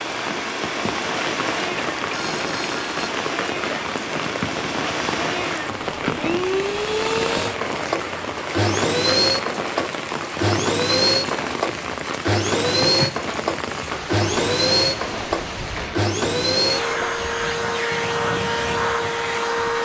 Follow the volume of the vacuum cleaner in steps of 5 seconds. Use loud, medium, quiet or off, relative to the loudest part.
medium, loud, loud, loud.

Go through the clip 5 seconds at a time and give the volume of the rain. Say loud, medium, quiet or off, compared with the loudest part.
loud, loud, loud, medium.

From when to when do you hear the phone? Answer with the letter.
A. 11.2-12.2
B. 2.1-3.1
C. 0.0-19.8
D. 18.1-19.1
B.